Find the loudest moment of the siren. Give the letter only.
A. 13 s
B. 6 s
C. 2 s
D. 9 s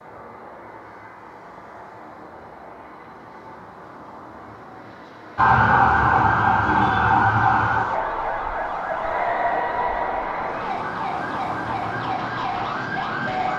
B.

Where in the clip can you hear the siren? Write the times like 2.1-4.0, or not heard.
5.3-13.5.